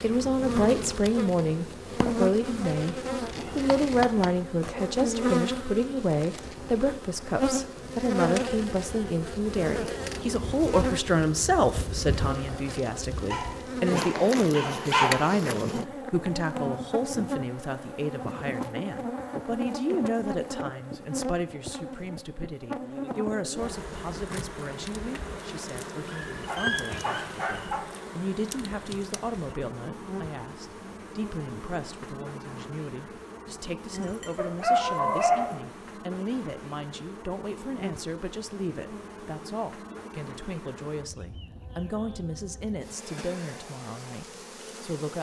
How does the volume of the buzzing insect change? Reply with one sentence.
The volume of the buzzing insect goes down.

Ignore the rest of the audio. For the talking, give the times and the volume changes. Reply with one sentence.
You can hear the talking briefly from 0.0 to 3.0 s; and from 3.5 to 45.1 s, getting quieter.